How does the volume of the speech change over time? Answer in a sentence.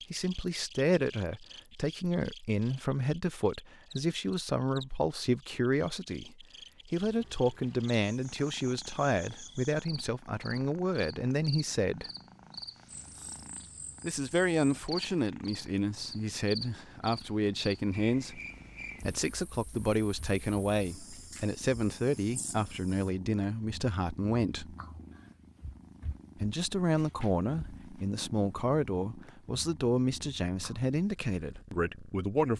The volume of the speech stays about the same.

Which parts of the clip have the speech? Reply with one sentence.
You can hear the speech from 0.1 to 12.1 s, from 14.0 to 18.4 s, from 19.0 to 24.8 s and from 26.4 to 32.5 s.